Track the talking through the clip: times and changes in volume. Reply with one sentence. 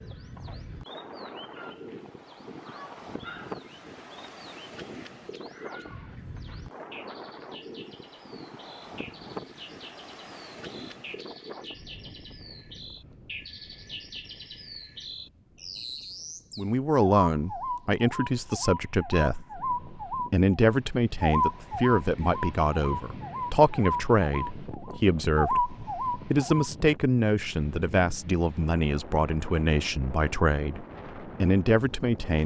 The talking can be heard from 16.6 to 32.4 s, at a steady volume.